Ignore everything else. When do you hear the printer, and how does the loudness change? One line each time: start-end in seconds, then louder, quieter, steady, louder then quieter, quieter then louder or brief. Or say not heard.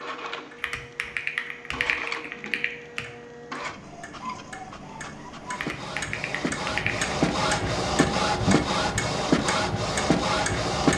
0.0-10.9 louder.